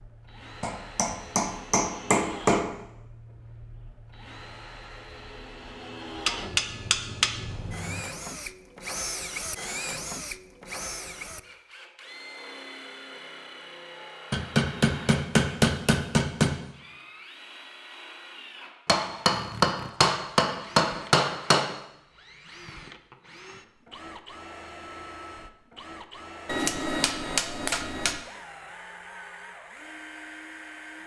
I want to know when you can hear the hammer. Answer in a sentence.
The hammer can be heard from 0.6 to 2.7 s, from 6.2 to 8.1 s, from 14.3 to 16.6 s, from 18.9 to 21.7 s and from 26.4 to 28.2 s.